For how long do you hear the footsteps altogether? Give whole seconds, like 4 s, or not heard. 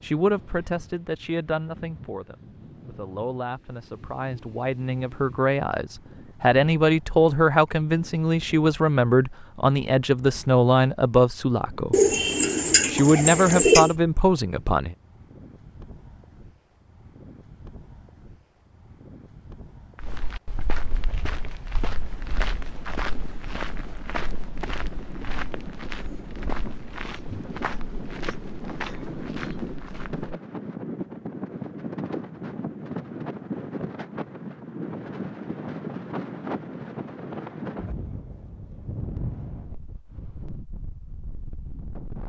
10 s.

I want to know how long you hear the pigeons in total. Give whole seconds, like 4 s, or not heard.
2 s.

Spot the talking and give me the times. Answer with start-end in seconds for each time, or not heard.
0.0-11.9, 12.8-14.9.